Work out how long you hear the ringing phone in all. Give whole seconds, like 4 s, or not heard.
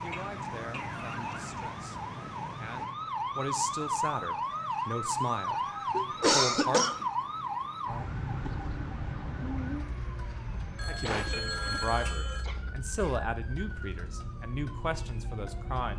2 s.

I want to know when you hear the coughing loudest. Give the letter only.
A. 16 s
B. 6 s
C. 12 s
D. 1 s
B.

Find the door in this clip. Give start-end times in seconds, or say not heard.
not heard.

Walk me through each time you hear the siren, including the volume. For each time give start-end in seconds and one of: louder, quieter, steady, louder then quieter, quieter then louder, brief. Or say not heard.
0.0-15.9 louder then quieter.